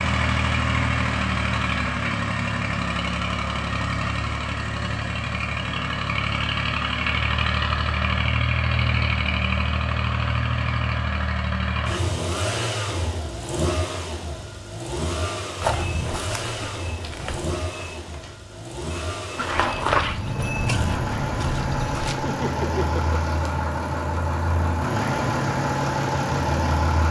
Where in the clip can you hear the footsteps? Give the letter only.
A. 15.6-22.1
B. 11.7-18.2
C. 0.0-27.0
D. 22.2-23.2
A.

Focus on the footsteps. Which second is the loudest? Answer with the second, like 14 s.
20 s.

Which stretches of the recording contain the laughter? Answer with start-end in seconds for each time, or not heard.
22.2-23.2.